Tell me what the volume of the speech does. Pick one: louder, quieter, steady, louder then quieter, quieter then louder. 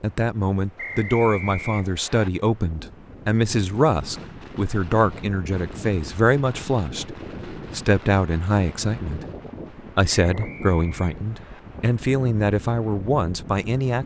steady.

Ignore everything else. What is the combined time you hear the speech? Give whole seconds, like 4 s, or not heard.
13 s.